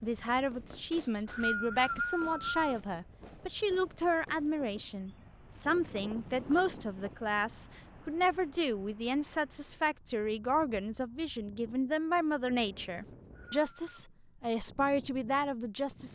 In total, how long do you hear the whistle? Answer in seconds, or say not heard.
3 s.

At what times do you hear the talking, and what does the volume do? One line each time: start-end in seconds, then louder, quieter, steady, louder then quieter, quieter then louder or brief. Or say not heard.
0.0-16.1 steady.